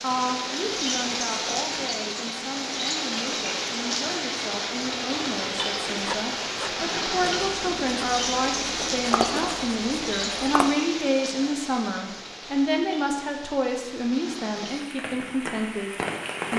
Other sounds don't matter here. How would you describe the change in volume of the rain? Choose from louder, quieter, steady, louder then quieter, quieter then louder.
quieter.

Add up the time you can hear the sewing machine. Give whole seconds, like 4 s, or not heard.
not heard.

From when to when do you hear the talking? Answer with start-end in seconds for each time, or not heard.
0.0-16.5.